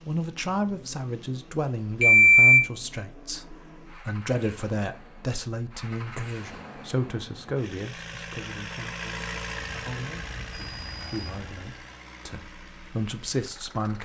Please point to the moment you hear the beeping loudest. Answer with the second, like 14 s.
2 s.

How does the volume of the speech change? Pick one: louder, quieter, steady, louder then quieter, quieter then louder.
quieter then louder.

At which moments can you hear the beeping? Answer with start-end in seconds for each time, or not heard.
2.0-2.6, 9.6-11.6.